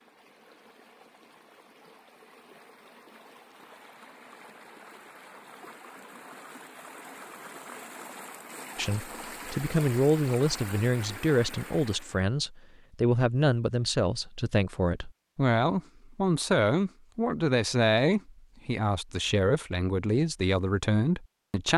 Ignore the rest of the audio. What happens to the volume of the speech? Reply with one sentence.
The volume of the speech stays about the same.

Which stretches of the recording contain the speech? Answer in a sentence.
The speech can be heard from 8.8 to 21.7 s.